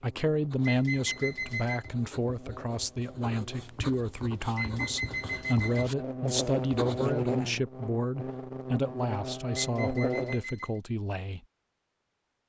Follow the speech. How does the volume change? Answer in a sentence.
The loudness of the speech stays about the same.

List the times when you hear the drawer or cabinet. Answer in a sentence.
The drawer or cabinet can't be heard in this clip.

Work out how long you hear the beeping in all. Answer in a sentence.
The beeping can be heard for 4 seconds in total.